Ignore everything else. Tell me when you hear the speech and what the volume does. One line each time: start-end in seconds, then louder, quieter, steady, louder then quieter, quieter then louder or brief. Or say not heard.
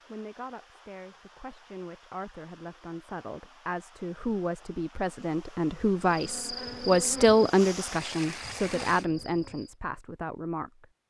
0.1-10.8 louder then quieter.